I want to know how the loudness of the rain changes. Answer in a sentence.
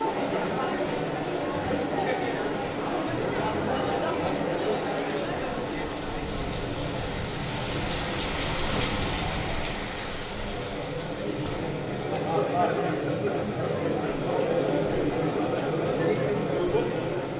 The loudness of the rain goes up, then down.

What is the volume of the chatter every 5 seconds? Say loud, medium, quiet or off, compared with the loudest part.
loud, medium, loud, loud.